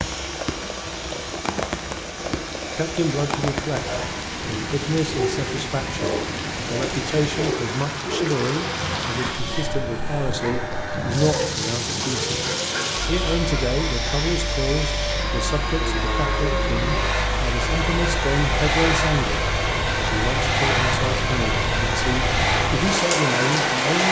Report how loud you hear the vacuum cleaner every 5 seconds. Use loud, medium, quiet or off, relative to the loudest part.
medium, medium, medium, loud, loud.